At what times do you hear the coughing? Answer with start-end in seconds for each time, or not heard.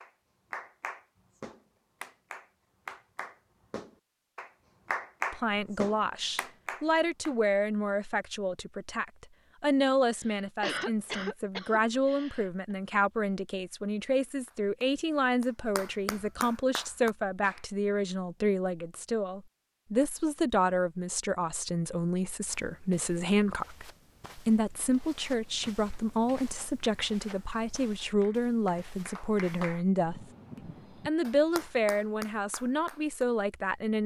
10.2-12.5.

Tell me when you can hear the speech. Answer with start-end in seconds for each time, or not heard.
5.3-34.0.